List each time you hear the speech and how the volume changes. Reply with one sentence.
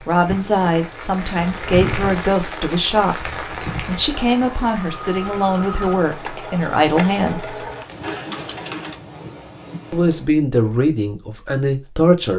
The speech can be heard from 0.1 to 7.7 s, at a steady volume; and briefly from 9.9 to 12.3 s.